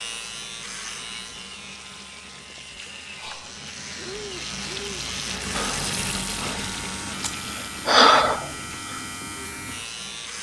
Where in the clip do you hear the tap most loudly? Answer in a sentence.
The volume of the tap peaks at 6 seconds.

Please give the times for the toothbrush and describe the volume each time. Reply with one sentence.
The toothbrush can't be heard in this clip.